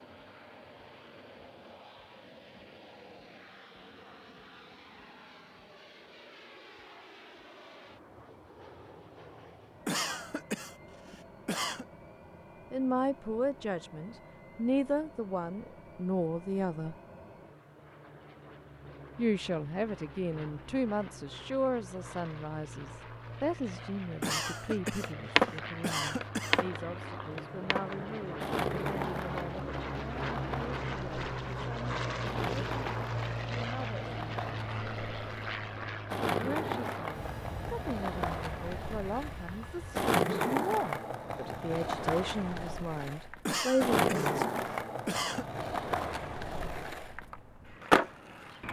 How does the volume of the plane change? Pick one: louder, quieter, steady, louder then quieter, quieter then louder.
louder.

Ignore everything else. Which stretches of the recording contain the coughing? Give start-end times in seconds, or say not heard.
9.8-11.8, 24.2-26.6, 43.5-45.5.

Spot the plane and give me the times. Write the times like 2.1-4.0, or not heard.
0.0-40.1.